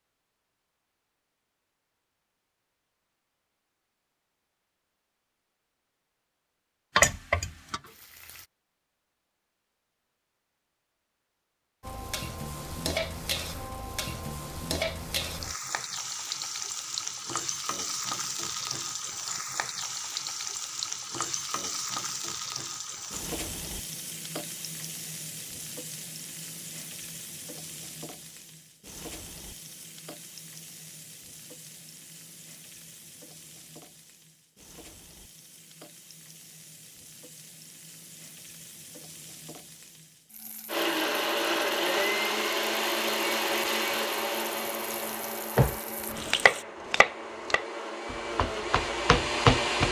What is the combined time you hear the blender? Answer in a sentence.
The blender can be heard for 9 seconds in total.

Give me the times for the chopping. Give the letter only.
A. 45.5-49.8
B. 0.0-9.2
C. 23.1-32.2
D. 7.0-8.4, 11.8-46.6
A.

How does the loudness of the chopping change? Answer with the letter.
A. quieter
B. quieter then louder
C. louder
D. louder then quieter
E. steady
B.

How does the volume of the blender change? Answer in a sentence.
The loudness of the blender goes down, then up.